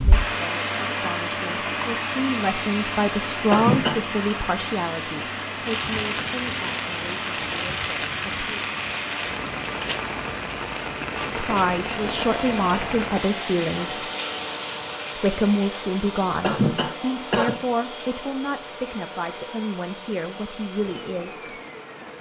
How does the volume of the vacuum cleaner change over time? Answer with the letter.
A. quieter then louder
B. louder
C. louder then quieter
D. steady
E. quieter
E.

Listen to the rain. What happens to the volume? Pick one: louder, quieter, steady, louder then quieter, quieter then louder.
quieter.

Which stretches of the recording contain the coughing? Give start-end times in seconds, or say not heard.
3.5-4.0, 16.4-17.6.